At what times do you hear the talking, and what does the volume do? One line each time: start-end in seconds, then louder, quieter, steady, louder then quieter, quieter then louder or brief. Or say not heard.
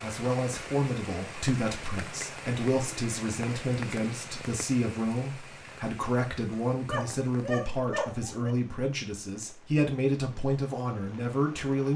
0.0-11.9 steady.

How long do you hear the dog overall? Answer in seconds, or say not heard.
2 s.